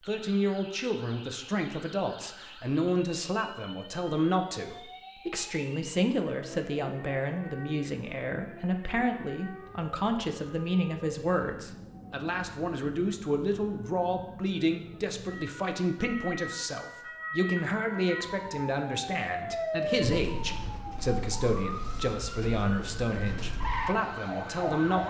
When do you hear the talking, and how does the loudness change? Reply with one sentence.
You can hear the talking from 0.1 to 25.0 s, at a steady volume.